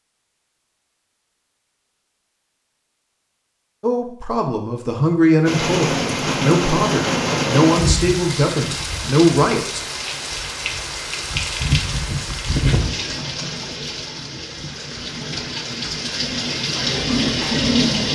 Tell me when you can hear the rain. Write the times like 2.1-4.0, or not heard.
5.5-18.0.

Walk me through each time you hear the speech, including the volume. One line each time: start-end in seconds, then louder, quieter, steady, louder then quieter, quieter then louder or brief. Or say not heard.
3.8-9.8 steady.